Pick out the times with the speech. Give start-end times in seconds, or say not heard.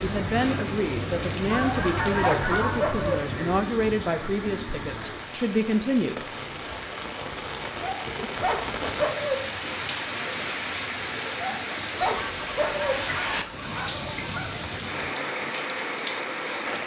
0.0-6.2.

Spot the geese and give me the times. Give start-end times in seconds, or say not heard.
1.4-3.2, 12.1-14.8.